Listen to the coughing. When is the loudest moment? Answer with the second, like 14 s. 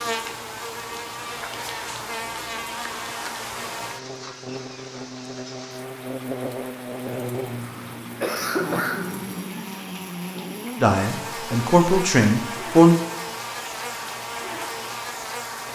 9 s.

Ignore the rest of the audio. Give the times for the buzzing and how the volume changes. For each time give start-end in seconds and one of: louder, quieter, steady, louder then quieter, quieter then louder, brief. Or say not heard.
0.0-15.6 steady.